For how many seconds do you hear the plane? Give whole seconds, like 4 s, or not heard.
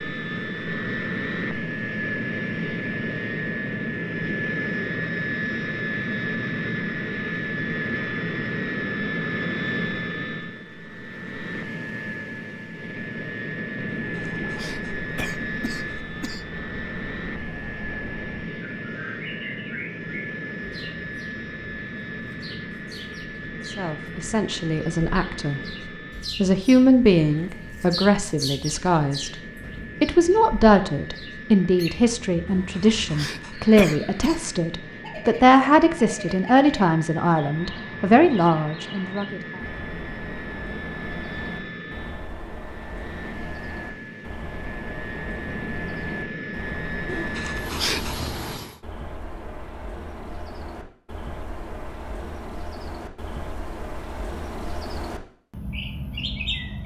49 s.